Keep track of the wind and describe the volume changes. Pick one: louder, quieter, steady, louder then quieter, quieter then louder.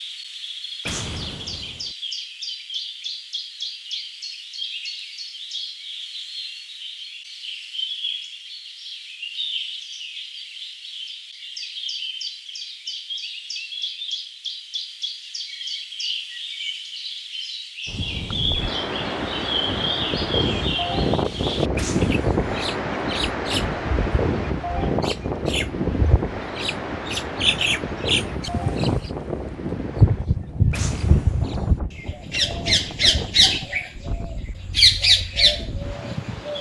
quieter.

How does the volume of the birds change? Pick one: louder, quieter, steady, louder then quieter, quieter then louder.
louder.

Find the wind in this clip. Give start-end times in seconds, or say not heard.
17.9-36.5.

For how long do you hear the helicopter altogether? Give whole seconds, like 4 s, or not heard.
not heard.